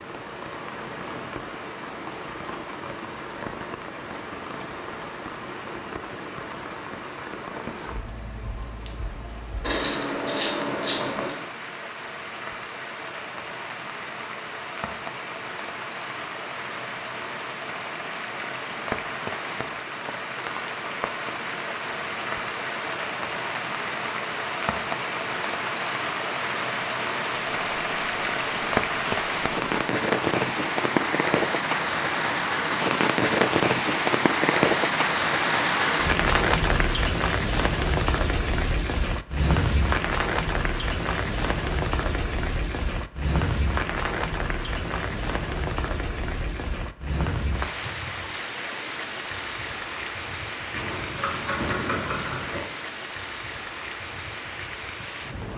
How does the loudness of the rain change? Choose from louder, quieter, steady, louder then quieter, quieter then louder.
louder then quieter.